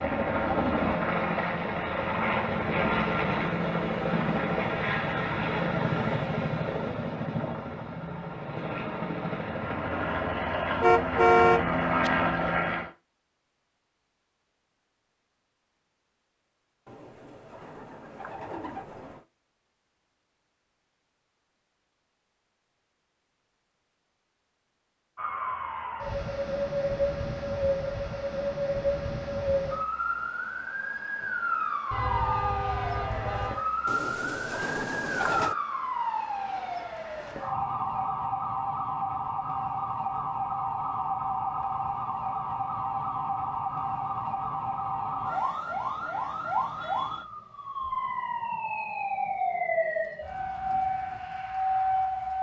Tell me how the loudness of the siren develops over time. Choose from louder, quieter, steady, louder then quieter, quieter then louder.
steady.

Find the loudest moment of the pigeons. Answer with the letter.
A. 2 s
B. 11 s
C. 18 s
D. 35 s
D.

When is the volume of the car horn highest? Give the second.
11 s.